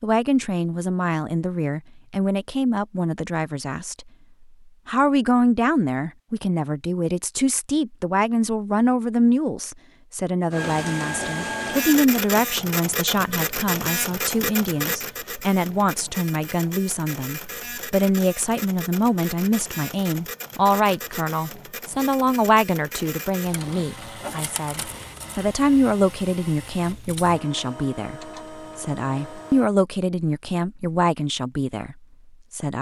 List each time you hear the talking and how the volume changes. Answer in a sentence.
You can hear the talking from 0.0 to 4.0 s, at a steady volume; and from 4.8 to 32.7 s, at a steady volume.